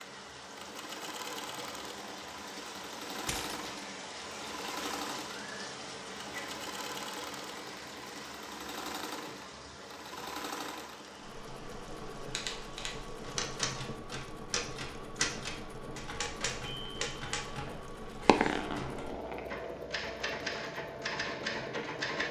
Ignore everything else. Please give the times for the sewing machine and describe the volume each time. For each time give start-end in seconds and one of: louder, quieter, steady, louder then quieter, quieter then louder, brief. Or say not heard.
0.0-22.2 steady.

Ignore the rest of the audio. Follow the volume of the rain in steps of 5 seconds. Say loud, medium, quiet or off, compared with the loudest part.
loud, loud, medium, medium, medium.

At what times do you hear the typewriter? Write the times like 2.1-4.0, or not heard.
12.3-22.2.